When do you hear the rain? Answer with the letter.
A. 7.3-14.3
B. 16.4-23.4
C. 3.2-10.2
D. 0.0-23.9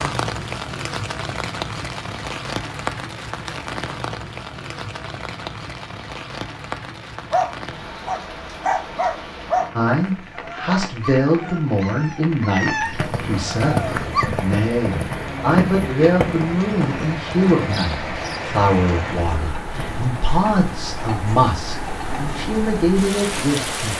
D.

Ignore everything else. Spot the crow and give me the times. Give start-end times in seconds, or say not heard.
not heard.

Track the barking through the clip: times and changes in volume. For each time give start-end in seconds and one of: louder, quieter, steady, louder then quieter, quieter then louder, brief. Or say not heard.
7.3-14.3 quieter then louder.